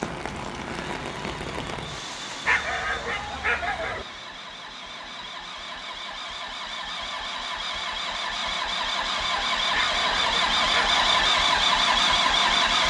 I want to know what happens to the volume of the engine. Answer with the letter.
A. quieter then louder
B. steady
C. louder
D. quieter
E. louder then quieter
C.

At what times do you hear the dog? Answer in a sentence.
You can hear the dog from 2.5 to 4.0 s and from 9.7 to 11.3 s.